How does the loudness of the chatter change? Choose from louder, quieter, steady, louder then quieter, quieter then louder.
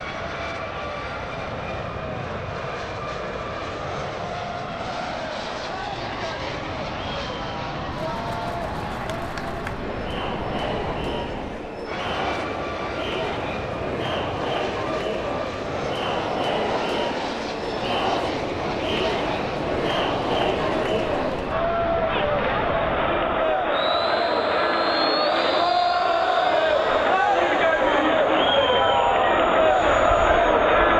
louder.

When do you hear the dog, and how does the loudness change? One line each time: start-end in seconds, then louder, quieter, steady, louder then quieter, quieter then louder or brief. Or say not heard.
not heard.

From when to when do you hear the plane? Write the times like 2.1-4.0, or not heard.
0.0-30.9.